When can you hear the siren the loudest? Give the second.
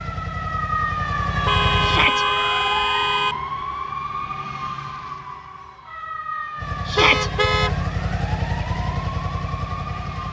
1 s.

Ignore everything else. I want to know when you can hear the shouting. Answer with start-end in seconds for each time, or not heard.
1.8-2.2, 6.8-7.3.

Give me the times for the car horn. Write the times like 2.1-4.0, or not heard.
1.4-3.4, 7.0-7.8.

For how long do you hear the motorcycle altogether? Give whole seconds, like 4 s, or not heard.
6 s.